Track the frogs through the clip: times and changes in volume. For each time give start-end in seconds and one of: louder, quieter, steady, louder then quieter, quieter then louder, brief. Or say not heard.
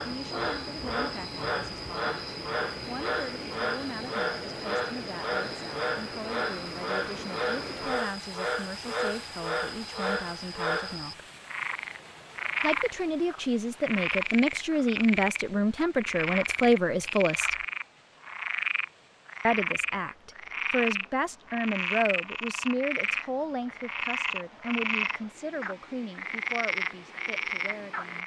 0.0-28.2 steady.